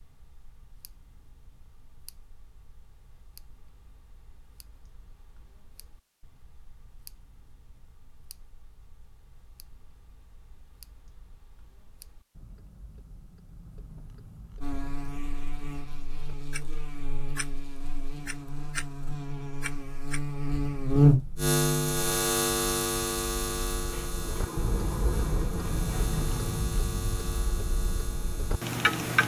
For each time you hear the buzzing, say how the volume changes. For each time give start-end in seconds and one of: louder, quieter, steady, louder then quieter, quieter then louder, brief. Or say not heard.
14.6-29.2 louder then quieter.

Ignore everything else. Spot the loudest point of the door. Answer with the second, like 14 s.
25 s.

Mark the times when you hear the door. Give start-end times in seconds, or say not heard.
23.9-26.6.